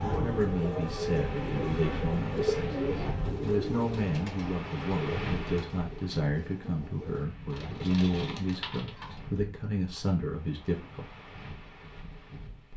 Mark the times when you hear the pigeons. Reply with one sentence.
The pigeons can be heard from 0.1 to 9.2 s.